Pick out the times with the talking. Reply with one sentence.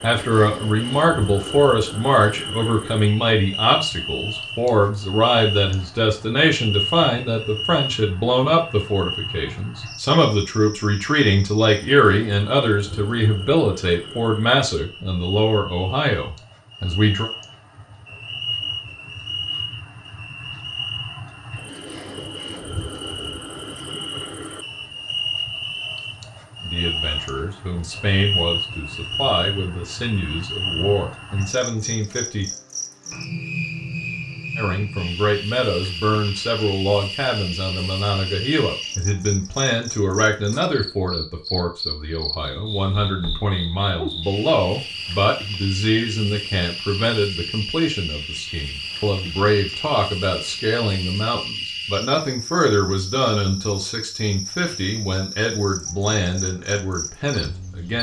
You can hear the talking from 0.0 to 17.3 s, from 26.6 to 32.5 s and from 34.5 to 57.9 s.